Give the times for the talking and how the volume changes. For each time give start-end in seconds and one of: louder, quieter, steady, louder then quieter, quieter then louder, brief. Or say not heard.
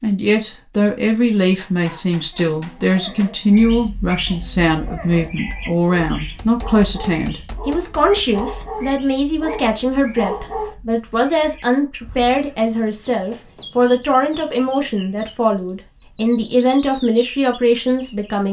0.0-18.4 steady.